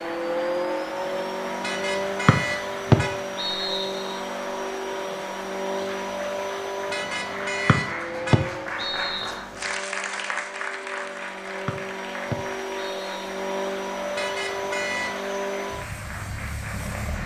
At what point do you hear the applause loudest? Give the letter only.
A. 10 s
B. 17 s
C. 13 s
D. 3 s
A.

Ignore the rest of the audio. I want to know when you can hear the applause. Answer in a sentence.
You can hear the applause from 0.0 to 17.2 s.